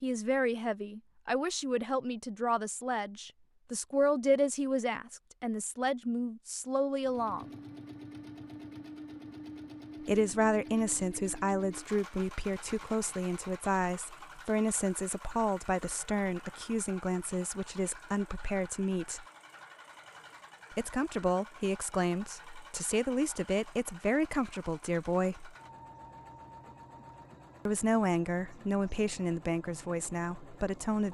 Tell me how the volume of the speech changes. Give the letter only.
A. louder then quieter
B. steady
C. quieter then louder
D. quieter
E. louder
B.